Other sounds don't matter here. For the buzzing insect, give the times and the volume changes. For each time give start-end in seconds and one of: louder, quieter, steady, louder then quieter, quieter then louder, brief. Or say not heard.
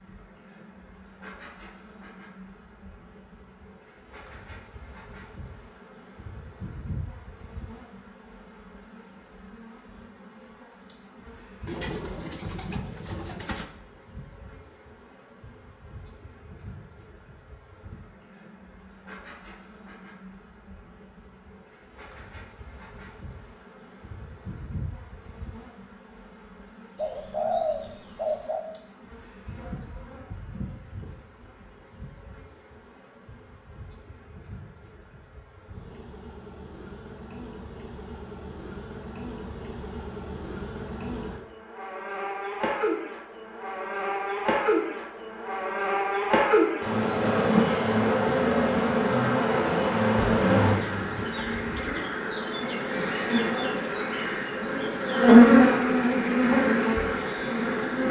0.0-58.0 louder.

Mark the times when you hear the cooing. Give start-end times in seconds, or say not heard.
11.7-13.7, 26.9-28.6, 50.1-52.0.